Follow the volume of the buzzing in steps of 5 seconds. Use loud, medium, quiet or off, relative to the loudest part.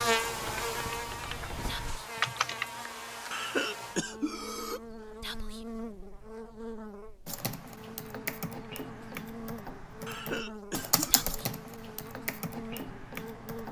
loud, medium, medium.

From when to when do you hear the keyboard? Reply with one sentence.
You can hear the keyboard from 0.1 to 2.7 s and from 7.2 to 13.6 s.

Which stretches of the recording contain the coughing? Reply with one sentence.
The coughing can be heard from 3.3 to 4.8 s and from 10.1 to 11.3 s.